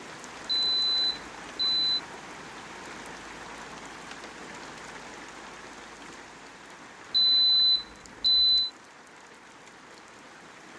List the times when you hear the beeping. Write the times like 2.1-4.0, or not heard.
0.5-2.0, 7.1-8.7.